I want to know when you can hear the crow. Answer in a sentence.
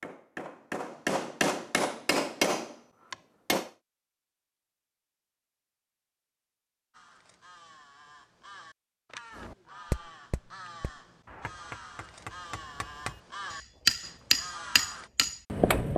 The crow can be heard from 6.9 to 15.1 s.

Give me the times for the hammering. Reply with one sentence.
The hammering can be heard from 0.0 to 3.7 s and from 9.3 to 15.9 s.